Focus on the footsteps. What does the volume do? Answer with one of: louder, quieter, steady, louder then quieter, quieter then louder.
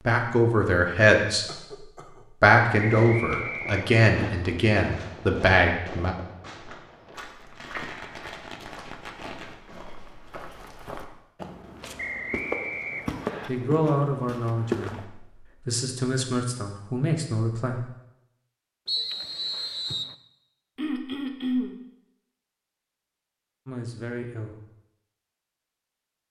quieter then louder.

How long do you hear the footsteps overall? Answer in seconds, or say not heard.
8 s.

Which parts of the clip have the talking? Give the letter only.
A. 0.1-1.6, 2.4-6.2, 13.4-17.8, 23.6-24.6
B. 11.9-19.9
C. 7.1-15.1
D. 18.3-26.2
A.